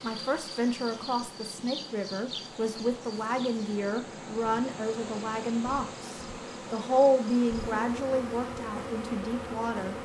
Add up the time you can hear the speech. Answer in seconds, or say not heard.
10 s.